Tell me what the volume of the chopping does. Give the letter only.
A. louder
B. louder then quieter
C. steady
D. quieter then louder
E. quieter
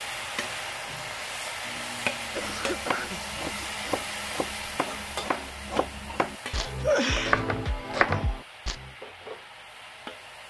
A.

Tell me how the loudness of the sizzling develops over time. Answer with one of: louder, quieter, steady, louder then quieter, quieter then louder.
quieter.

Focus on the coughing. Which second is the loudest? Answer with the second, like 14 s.
7 s.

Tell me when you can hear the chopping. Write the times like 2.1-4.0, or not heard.
2.2-8.9.